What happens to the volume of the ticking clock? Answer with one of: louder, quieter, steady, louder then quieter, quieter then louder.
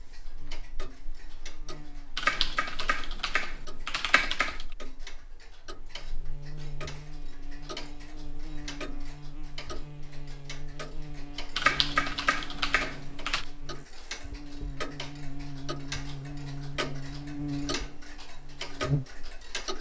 louder.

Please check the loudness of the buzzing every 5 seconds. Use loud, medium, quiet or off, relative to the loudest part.
quiet, medium, medium, loud.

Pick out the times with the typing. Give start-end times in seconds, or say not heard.
2.1-4.7, 11.6-13.4.